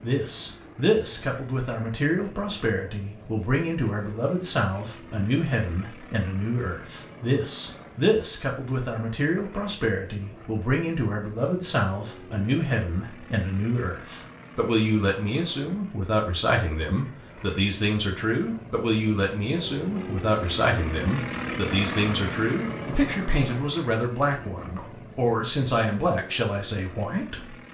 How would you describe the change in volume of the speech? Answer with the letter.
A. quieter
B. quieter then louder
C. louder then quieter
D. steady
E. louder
D.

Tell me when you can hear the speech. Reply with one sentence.
The speech can be heard from 0.0 to 27.6 s.